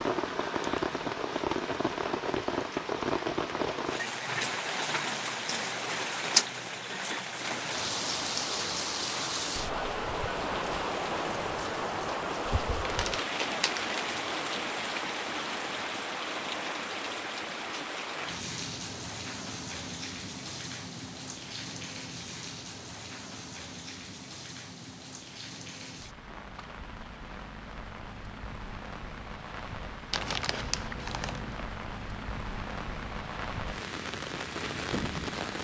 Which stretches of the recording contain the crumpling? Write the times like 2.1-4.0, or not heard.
12.8-14.0, 30.1-31.6.